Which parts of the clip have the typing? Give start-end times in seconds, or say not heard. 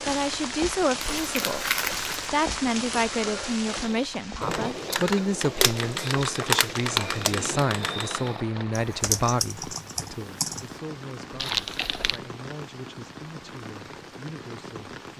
3.7-10.7.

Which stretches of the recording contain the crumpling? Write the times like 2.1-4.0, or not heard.
1.2-2.2, 5.6-7.3, 11.3-12.2.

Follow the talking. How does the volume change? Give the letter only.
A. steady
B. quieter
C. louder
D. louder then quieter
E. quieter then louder
B.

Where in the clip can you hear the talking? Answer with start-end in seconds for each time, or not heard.
0.1-15.1.